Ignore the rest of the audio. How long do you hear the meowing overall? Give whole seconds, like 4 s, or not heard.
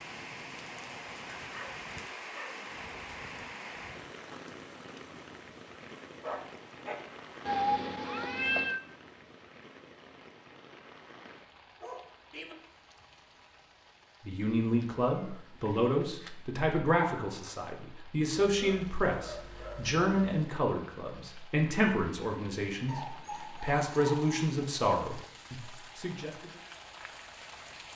3 s.